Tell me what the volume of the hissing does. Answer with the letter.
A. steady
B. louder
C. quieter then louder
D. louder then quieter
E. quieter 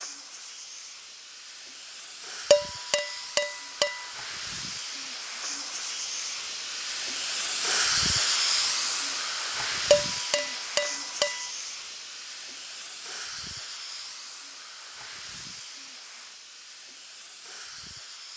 D.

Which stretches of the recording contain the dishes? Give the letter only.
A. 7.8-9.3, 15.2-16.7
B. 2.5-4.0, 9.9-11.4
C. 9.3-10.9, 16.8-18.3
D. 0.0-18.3
B.